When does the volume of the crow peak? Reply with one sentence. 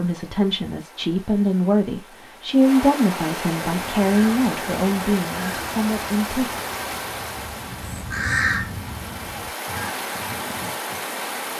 The volume of the crow peaks at 8 seconds.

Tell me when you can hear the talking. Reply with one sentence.
The talking can be heard from 0.0 to 6.6 s.